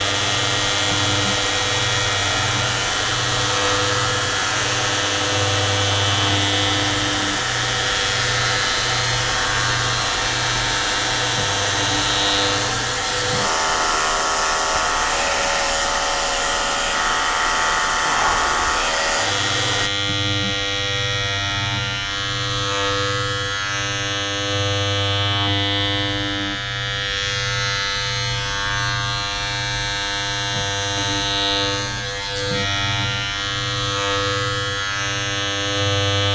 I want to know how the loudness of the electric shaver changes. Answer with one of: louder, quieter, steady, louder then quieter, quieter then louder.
steady.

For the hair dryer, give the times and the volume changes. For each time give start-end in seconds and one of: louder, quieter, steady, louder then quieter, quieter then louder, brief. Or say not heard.
0.0-19.9 steady.